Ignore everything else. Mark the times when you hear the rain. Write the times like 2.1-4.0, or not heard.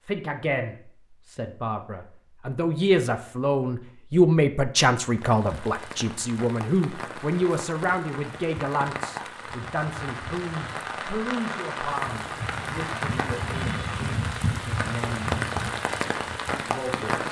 5.0-17.2.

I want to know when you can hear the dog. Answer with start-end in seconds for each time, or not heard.
not heard.